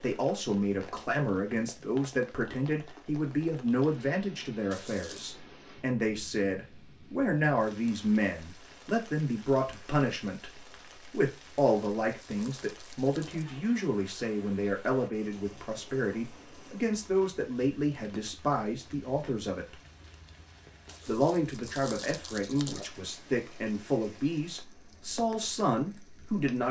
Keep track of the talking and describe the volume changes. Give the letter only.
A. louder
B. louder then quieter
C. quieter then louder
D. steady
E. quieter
D.